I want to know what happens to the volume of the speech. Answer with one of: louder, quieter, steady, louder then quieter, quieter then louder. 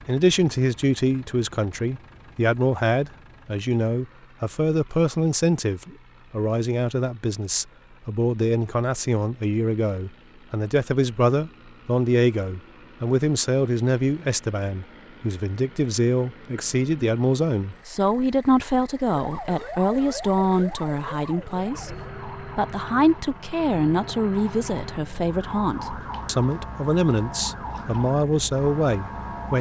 steady.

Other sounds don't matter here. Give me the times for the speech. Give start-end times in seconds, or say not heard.
0.1-29.5.